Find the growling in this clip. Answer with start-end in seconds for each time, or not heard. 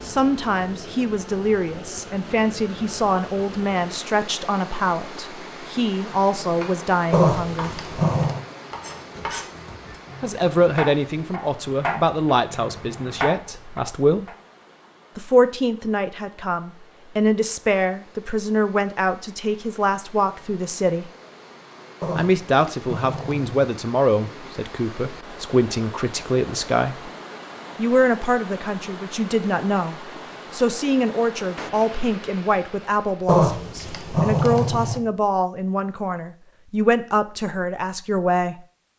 7.1-8.4, 22.0-23.7, 33.2-35.0.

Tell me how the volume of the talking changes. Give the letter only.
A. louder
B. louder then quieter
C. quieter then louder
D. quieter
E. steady
E.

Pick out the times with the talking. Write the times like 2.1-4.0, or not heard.
0.0-7.7, 10.2-14.3, 15.2-21.1, 22.1-27.1, 27.8-38.5.